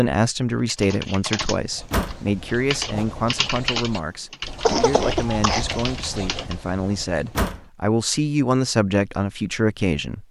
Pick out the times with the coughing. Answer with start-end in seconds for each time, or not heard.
4.7-5.8.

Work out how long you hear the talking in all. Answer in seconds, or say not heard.
10 s.